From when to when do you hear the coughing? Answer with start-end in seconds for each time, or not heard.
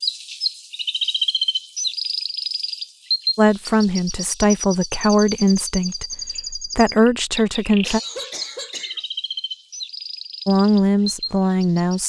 7.8-9.0.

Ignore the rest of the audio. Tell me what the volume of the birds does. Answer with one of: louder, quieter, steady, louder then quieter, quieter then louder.
quieter.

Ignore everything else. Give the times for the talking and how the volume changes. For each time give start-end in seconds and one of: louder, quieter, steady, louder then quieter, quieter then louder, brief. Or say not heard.
3.4-8.0 steady
10.4-12.0 brief.